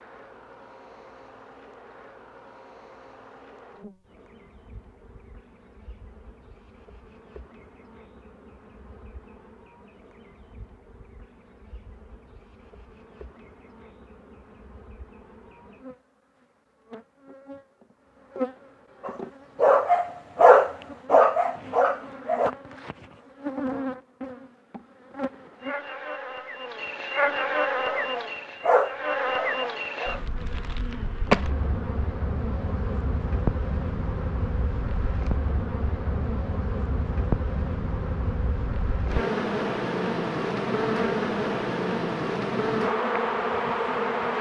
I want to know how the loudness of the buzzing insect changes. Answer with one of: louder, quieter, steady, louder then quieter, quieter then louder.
louder.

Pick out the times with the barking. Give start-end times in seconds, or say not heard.
19.0-22.6, 27.8-30.2.